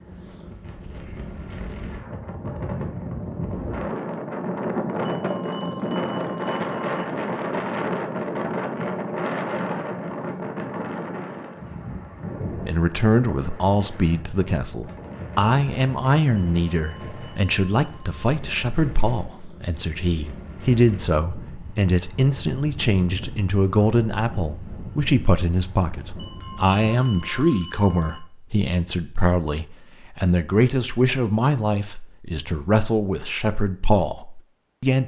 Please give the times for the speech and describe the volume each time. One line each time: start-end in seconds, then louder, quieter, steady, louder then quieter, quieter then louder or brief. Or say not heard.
12.7-35.0 steady.